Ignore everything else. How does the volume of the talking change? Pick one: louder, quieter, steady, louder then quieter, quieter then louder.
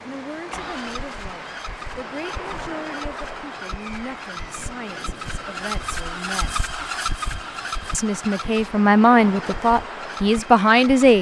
louder.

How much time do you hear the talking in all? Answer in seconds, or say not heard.
10 s.